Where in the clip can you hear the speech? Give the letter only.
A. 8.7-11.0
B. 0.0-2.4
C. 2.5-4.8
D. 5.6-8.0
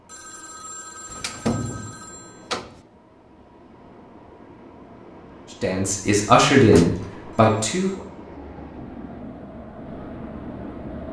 D.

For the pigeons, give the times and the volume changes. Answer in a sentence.
The pigeons can't be heard in this clip.